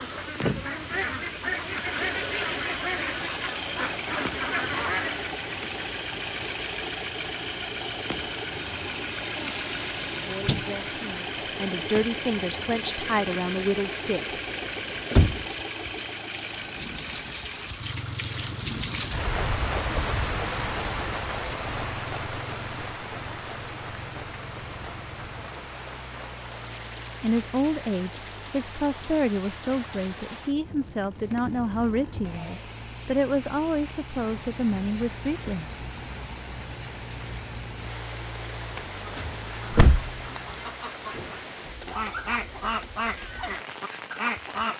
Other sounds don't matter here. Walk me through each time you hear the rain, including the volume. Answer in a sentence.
The rain can be heard from 0.0 to 44.7 s, getting louder then quieter.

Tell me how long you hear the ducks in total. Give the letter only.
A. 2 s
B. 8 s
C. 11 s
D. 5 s
C.